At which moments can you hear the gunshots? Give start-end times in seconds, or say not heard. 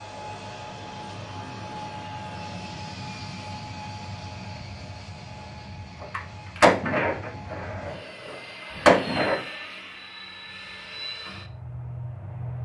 6.0-9.4.